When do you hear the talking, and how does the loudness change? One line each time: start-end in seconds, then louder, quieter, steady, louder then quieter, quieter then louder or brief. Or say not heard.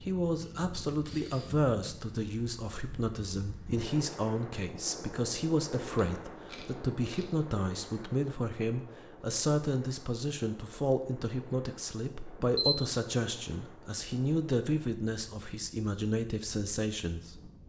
0.0-17.5 steady.